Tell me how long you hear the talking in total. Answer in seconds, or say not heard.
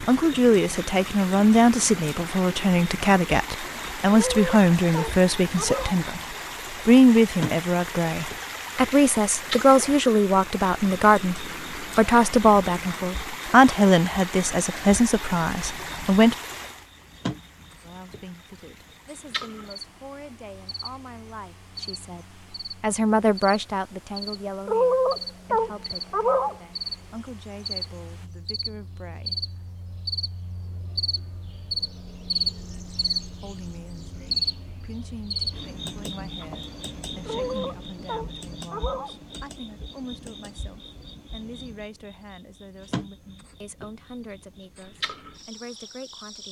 41 s.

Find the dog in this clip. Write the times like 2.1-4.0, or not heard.
4.1-6.0, 24.6-26.6, 37.2-39.1.